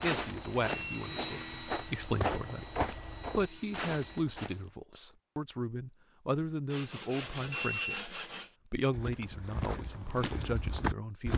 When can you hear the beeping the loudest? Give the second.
8 s.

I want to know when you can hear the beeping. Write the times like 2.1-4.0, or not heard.
0.6-1.0, 7.2-8.0.